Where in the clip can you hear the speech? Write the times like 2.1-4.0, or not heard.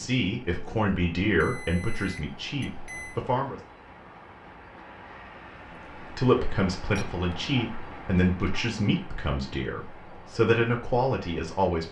0.0-3.6, 6.1-11.8.